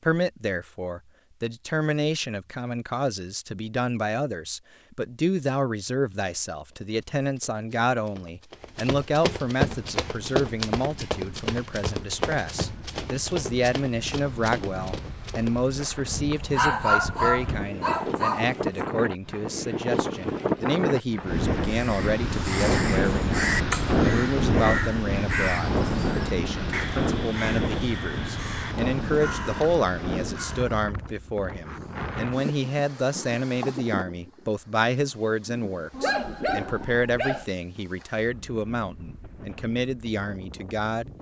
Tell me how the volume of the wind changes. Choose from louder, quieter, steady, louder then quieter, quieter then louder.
louder then quieter.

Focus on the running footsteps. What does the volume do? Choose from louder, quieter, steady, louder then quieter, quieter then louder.
louder then quieter.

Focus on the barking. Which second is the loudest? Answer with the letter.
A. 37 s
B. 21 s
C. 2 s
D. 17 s
D.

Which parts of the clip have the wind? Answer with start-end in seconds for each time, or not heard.
9.6-41.1.